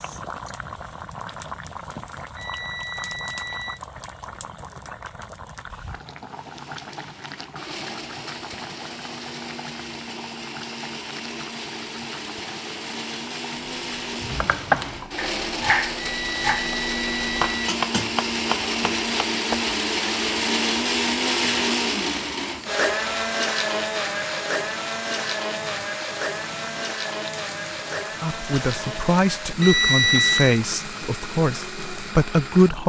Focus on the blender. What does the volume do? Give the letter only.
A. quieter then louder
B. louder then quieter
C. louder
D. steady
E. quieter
B.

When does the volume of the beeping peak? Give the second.
30 s.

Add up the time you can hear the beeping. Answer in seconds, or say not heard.
4 s.